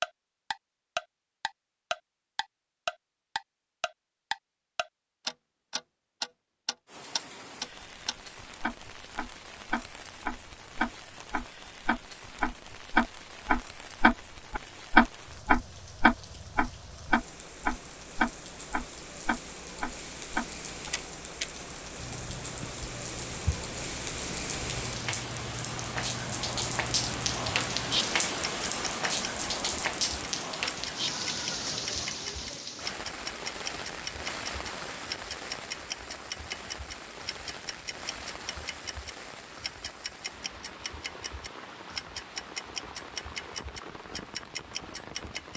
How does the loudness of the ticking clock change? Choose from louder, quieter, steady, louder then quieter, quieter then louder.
quieter.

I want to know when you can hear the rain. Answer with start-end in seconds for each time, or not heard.
6.8-45.5.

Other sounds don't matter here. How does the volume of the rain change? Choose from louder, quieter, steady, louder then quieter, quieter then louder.
louder then quieter.